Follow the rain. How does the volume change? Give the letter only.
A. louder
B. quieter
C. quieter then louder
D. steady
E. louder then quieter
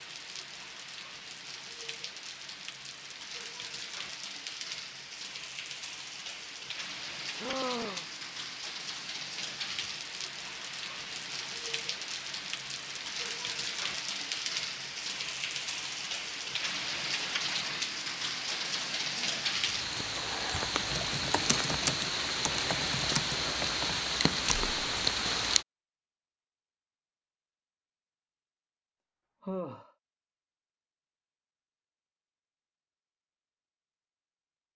A.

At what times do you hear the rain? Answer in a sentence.
You can hear the rain from 0.0 to 25.6 s.